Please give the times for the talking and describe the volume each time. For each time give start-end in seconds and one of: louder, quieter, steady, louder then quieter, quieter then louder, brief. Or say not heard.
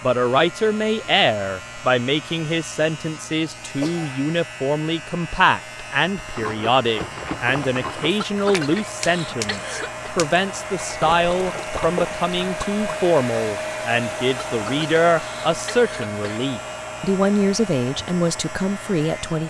0.0-19.4 steady.